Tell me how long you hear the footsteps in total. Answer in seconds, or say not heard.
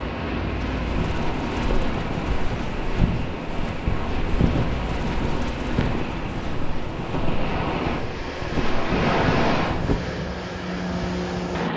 9 s.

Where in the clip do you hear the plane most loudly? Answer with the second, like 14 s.
11 s.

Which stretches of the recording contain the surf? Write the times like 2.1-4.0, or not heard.
0.0-9.8.